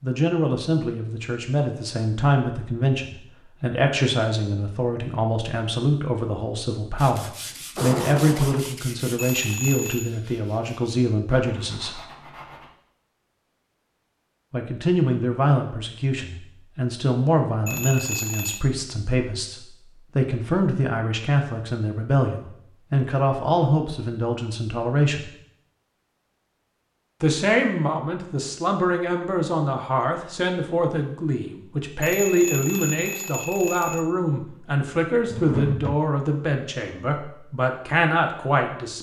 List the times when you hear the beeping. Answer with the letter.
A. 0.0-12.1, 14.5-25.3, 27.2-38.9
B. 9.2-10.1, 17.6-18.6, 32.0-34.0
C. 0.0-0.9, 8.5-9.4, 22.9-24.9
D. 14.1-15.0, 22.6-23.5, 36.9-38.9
B.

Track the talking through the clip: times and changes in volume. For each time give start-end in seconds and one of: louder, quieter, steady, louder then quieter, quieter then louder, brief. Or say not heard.
0.0-12.1 steady
14.5-25.3 steady
27.2-38.9 steady.